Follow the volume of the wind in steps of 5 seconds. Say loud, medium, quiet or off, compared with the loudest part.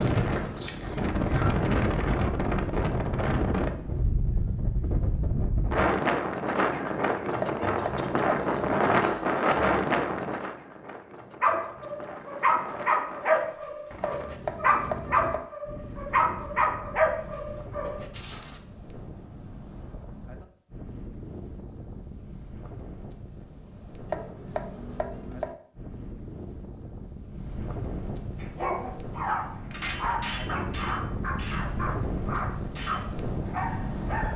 loud, loud, quiet, quiet, quiet, quiet, medium.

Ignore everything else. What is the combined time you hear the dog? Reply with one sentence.
You can hear the dog for 14 seconds altogether.